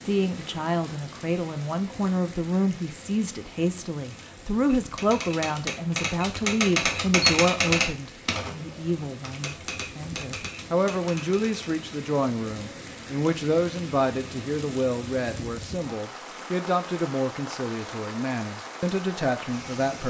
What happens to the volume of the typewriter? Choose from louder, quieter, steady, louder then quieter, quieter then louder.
louder then quieter.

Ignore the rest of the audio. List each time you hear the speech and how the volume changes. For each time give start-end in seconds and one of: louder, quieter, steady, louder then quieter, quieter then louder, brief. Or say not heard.
0.0-20.0 steady.